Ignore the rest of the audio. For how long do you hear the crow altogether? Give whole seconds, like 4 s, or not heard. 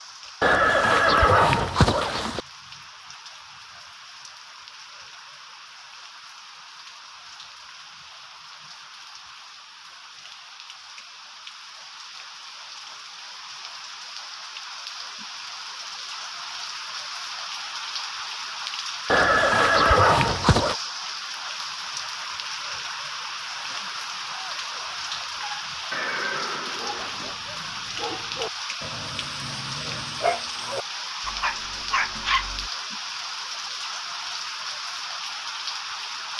not heard.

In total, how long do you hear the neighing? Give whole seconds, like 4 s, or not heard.
5 s.